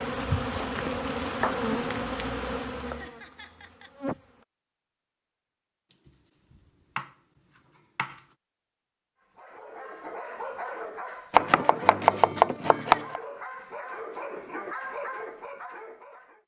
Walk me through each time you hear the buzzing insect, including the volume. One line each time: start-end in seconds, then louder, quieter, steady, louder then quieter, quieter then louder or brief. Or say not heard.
0.0-4.5 quieter.